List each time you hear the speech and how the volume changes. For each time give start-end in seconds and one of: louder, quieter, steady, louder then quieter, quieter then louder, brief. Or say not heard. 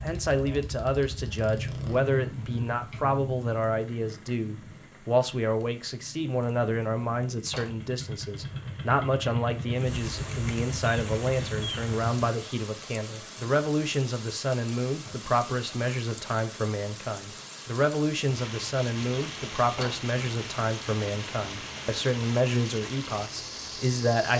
0.0-24.3 steady.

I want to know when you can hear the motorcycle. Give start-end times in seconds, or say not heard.
0.0-12.2.